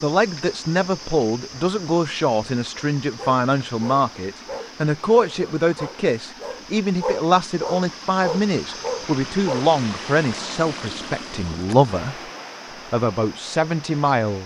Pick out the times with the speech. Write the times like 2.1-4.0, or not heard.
0.0-12.2, 12.9-14.4.